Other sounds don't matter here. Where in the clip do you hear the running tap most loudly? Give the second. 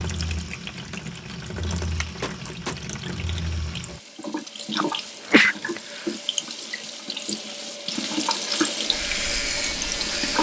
10 s.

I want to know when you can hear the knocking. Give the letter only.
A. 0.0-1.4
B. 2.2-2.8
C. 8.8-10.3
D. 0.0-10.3
B.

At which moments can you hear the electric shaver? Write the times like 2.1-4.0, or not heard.
8.8-10.3.